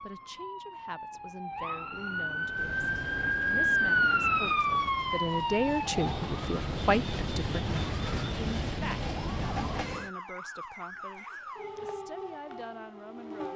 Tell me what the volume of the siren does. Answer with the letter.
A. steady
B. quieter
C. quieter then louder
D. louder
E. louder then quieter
E.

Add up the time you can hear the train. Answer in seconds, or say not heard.
8 s.